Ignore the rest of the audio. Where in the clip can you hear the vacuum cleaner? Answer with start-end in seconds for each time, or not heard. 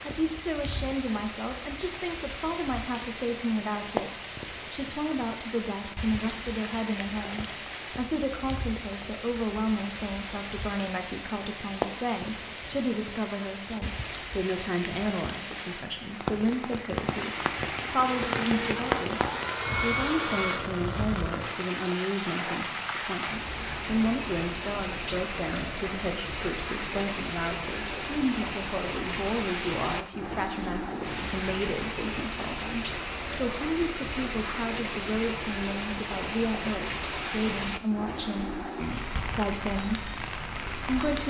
18.0-20.6.